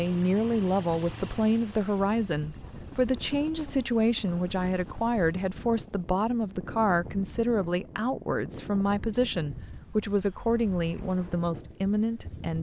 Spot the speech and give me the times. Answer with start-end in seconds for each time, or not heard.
0.0-12.5.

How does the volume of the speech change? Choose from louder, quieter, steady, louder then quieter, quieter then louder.
steady.